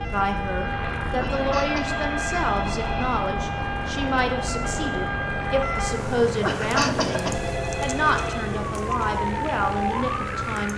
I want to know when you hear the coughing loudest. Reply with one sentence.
The loudest moment of the coughing is at 7 seconds.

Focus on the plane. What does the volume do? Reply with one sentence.
The loudness of the plane stays about the same.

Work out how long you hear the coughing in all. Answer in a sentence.
The coughing can be heard for 2 seconds in total.